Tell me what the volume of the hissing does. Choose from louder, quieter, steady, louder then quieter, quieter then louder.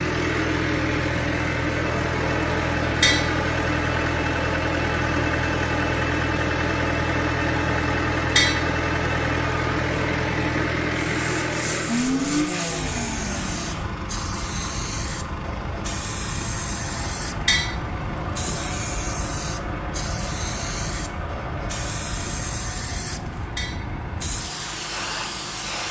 steady.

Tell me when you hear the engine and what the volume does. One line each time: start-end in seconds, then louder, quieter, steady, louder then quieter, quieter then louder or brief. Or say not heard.
0.0-25.8 quieter.